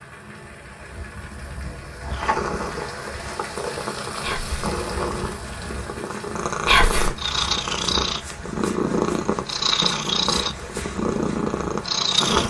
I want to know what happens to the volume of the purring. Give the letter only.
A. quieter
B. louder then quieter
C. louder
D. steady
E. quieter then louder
C.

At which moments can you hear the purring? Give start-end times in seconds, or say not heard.
2.0-12.4.